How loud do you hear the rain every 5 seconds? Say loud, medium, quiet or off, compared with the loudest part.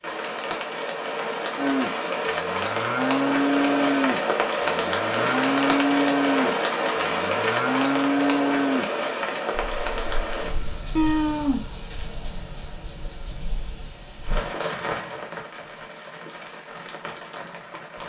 loud, loud, medium, quiet.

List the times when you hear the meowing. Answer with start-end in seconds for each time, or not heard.
10.9-11.7.